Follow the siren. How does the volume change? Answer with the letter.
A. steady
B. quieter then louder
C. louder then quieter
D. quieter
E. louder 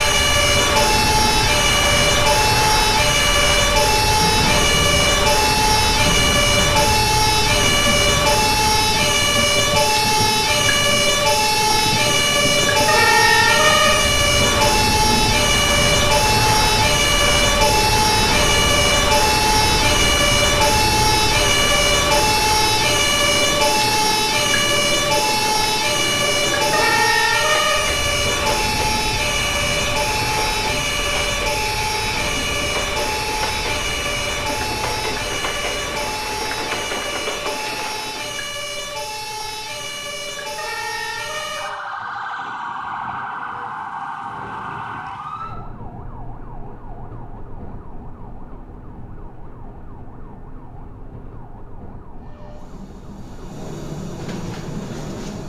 D.